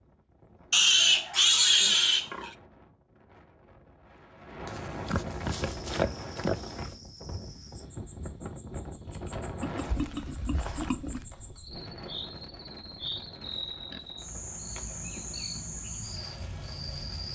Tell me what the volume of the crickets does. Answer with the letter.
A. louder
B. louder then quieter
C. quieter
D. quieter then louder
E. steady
A.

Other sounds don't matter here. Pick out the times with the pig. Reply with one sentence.
You can hear the pig from 0.7 to 2.5 s, from 4.7 to 6.9 s, from 9.6 to 11.2 s and from 13.5 to 15.3 s.